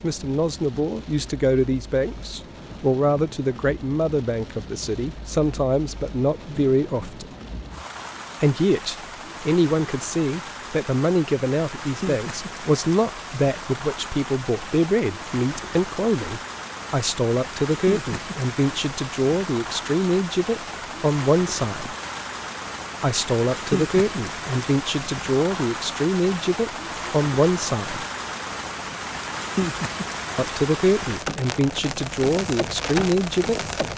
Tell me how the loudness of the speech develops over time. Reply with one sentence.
The loudness of the speech stays about the same.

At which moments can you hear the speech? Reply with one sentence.
The speech can be heard from 0.0 to 7.2 s, from 8.4 to 21.9 s, from 23.0 to 28.1 s and from 30.4 to 33.6 s.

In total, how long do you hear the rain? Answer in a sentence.
You can hear the rain for 34 seconds altogether.